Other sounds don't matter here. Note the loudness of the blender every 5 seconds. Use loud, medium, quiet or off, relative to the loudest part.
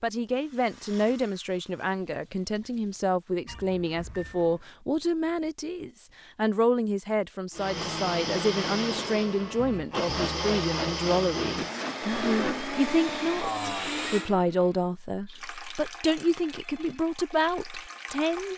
off, loud, loud, off.